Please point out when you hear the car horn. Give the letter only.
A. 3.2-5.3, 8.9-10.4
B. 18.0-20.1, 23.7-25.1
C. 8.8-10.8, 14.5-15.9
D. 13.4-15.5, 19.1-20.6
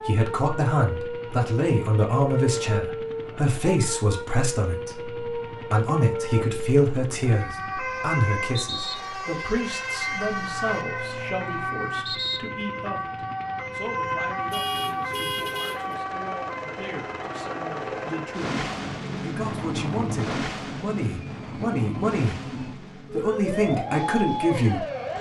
C.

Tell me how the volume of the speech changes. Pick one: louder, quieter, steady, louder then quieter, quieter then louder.
quieter then louder.